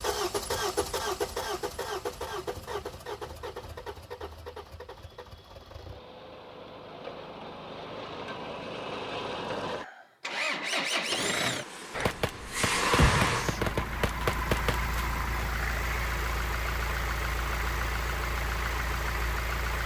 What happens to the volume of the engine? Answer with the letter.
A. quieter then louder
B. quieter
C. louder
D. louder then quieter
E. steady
A.